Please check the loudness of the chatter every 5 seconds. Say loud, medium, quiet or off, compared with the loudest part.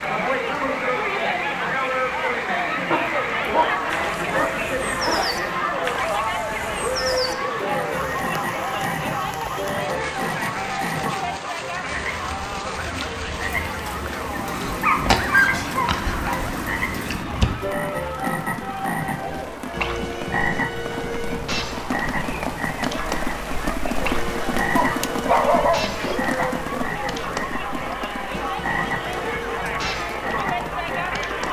loud, loud, medium, medium, medium, medium, loud.